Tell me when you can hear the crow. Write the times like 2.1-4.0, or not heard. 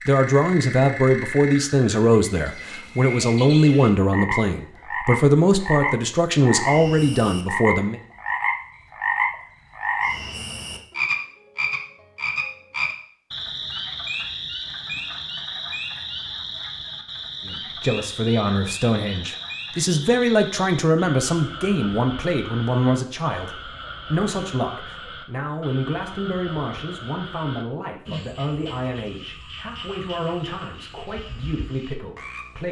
not heard.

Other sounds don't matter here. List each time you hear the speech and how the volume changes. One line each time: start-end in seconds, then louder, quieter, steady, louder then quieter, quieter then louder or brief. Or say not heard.
0.1-8.0 steady
17.4-32.6 quieter.